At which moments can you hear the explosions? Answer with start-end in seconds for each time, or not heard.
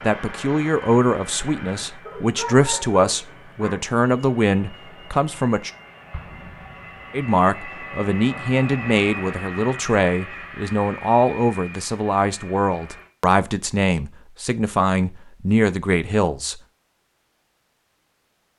6.1-7.1.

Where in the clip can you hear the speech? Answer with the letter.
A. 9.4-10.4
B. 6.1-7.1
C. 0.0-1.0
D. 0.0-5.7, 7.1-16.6
D.